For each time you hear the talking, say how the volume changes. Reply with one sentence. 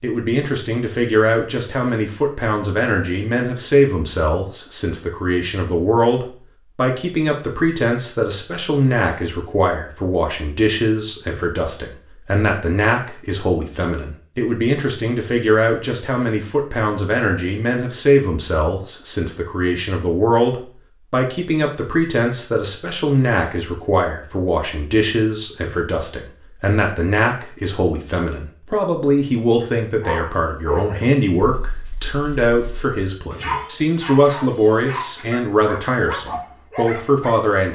The talking can be heard from 0.0 to 37.7 s, at a steady volume.